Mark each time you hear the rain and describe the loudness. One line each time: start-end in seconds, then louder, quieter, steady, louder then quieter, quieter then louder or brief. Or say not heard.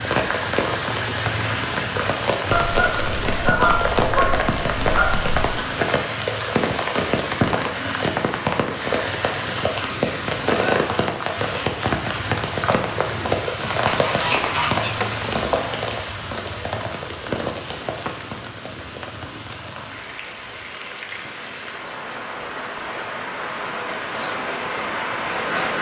0.0-25.7 quieter.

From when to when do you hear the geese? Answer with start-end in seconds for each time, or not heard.
2.5-5.5, 13.8-15.3.